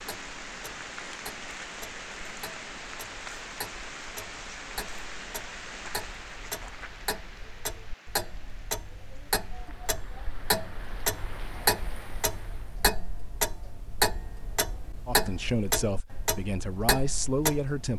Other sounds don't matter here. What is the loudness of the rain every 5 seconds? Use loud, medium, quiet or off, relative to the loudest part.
loud, medium, medium, off.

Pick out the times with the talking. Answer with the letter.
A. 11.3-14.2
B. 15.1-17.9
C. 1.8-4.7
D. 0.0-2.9
B.